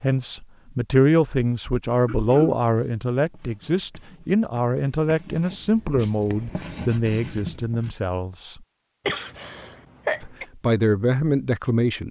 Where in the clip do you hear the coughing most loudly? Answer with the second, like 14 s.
10 s.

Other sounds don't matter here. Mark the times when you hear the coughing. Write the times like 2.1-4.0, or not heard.
2.0-2.6, 9.1-10.4.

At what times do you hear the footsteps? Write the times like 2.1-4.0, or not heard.
not heard.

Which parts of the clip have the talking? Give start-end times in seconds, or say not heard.
0.0-8.6, 10.2-12.0.